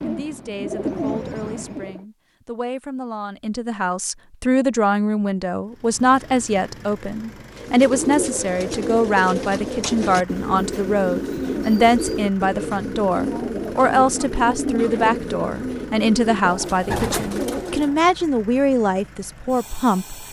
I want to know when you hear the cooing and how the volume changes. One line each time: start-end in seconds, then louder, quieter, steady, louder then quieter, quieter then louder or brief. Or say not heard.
0.0-2.0 brief
7.5-18.1 steady.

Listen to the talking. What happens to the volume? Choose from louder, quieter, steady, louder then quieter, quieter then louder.
louder.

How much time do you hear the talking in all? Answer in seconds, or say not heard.
20 s.